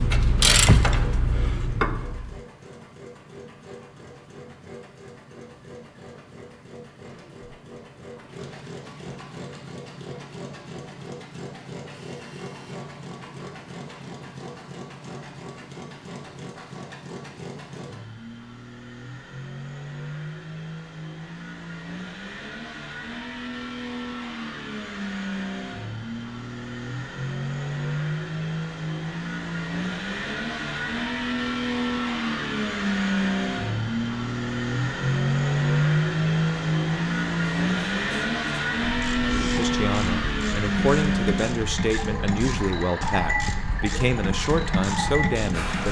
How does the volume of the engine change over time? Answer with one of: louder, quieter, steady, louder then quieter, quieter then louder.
louder.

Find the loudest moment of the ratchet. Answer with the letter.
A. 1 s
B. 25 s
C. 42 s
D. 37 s
A.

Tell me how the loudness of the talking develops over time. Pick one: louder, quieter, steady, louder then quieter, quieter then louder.
steady.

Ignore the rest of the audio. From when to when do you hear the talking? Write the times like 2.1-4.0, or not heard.
39.4-45.8.